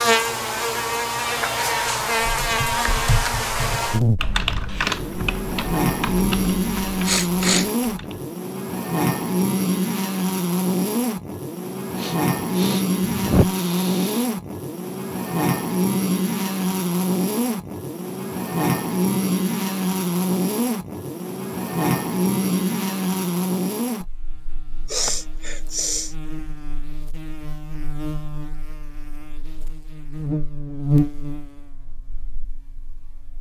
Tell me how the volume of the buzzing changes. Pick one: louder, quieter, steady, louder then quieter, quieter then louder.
quieter.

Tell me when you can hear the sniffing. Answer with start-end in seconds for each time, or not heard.
7.0-7.7, 11.9-14.2, 24.9-26.1.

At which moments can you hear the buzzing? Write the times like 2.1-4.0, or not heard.
0.0-33.3.